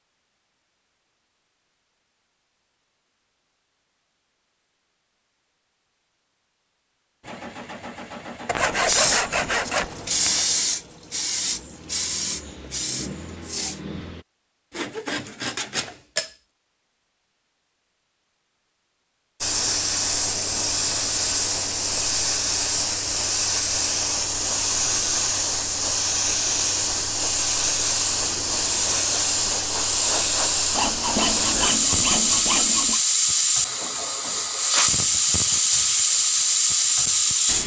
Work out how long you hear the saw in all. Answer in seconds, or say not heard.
6 s.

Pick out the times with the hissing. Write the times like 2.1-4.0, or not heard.
8.7-13.8, 19.4-37.6.